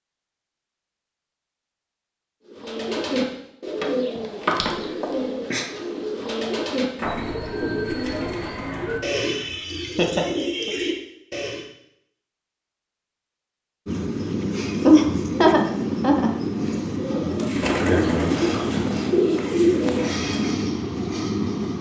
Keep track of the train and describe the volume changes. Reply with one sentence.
The loudness of the train stays about the same.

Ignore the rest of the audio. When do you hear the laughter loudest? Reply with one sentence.
The volume of the laughter peaks at 15 seconds.